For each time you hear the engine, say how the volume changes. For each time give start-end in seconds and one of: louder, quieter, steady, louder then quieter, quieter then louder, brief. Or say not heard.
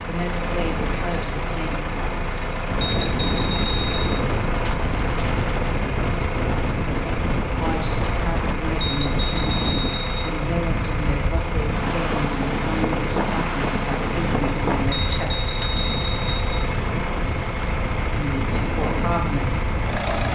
0.0-20.2 steady.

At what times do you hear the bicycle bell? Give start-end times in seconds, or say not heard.
2.4-4.2, 8.3-10.3, 14.4-16.5.